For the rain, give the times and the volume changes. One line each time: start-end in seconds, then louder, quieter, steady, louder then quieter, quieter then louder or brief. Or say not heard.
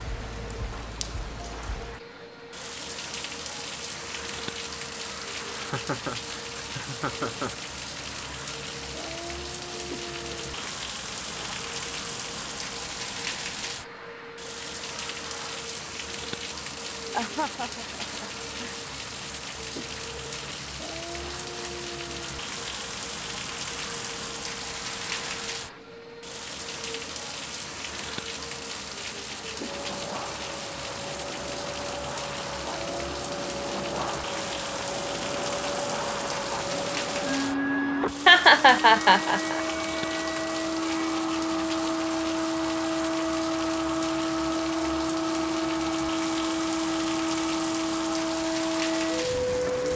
0.0-49.9 steady.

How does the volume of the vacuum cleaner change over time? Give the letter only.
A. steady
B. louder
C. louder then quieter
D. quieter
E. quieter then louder
B.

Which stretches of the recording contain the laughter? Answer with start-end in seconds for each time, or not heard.
5.5-7.5, 17.1-18.8, 38.2-39.6.